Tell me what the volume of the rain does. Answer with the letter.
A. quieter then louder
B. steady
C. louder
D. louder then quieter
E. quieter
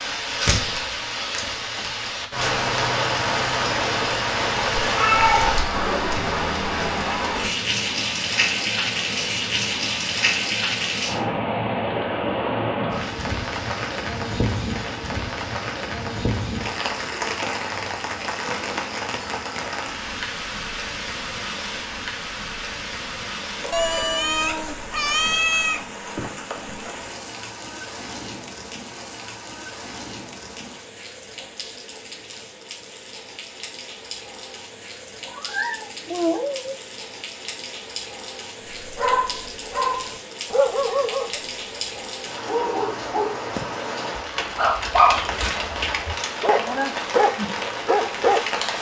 A.